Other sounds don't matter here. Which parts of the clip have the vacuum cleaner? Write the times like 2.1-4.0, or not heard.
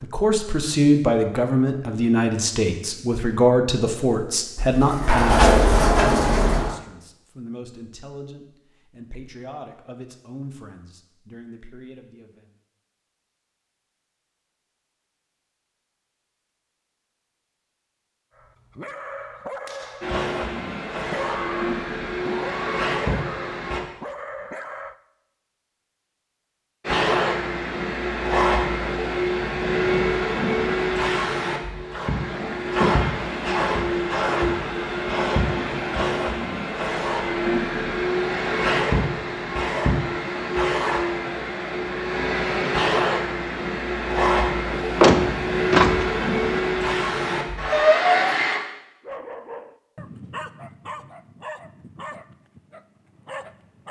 20.0-23.8, 26.8-48.6.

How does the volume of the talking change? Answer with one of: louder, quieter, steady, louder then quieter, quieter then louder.
quieter.